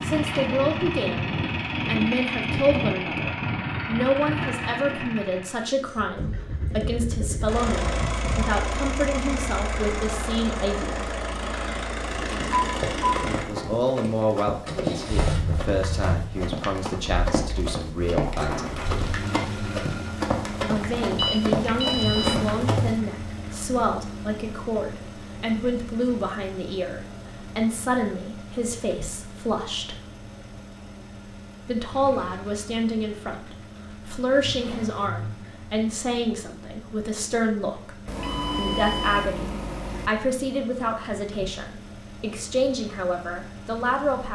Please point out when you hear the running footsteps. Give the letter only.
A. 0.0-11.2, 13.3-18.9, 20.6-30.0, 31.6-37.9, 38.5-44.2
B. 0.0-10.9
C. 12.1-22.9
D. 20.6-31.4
C.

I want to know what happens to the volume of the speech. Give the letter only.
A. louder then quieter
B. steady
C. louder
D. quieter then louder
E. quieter
B.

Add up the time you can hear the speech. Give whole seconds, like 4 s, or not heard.
38 s.